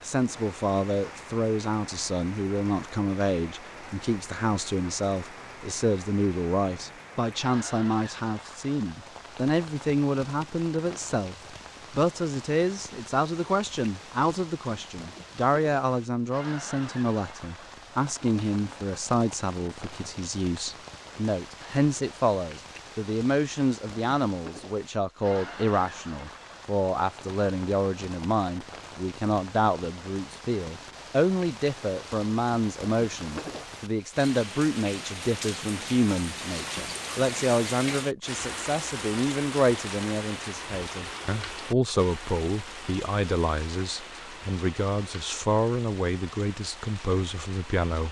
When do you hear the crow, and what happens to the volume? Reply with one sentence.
The crow can't be heard in this clip.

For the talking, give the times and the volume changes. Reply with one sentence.
The talking can be heard from 0.0 to 48.0 s, at a steady volume.